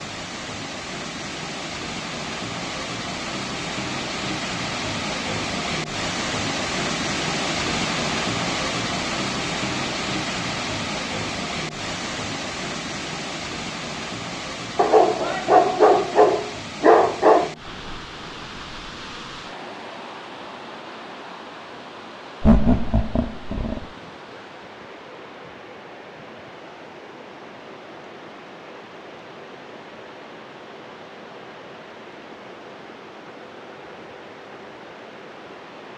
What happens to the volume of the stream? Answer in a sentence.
The volume of the stream goes down.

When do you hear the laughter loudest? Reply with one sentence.
The volume of the laughter peaks at 23 seconds.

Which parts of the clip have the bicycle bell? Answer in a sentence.
You can't hear the bicycle bell here.